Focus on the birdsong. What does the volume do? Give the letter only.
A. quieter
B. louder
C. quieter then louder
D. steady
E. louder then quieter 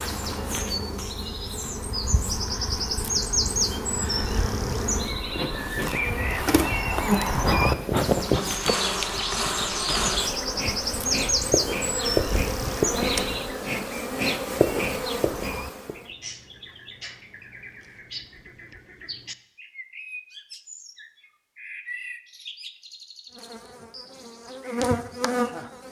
A.